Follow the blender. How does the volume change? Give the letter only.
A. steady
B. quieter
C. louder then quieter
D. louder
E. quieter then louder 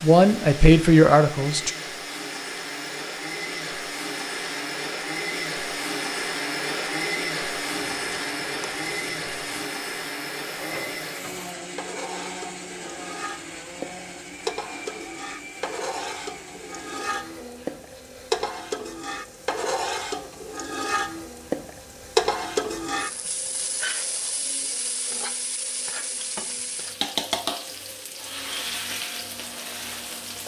B.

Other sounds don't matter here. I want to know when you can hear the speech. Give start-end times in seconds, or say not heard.
0.0-1.7.